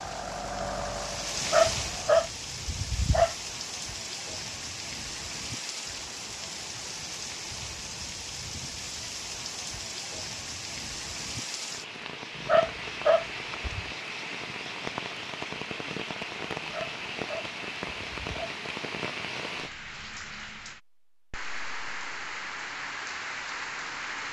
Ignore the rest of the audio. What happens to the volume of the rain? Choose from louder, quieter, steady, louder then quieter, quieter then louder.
steady.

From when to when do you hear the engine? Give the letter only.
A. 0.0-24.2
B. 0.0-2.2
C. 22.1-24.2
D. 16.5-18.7
B.